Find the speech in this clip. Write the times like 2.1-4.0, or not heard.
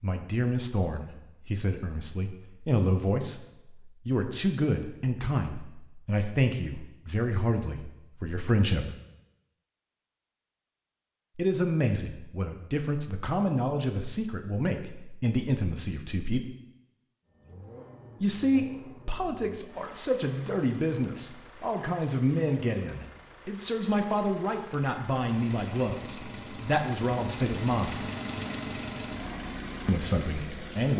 0.0-8.9, 11.3-16.4, 18.2-28.0, 29.9-30.9.